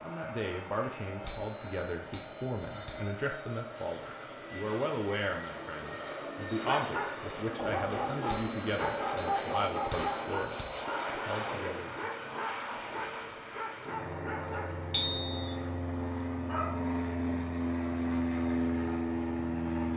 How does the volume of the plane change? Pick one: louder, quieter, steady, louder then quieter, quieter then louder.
louder.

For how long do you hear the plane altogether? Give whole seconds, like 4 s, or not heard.
20 s.